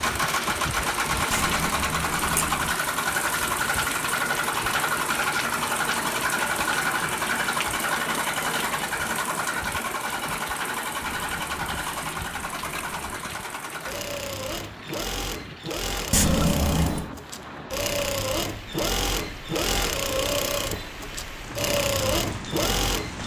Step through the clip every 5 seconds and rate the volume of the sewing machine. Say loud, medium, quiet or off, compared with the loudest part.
loud, loud, medium, loud, loud.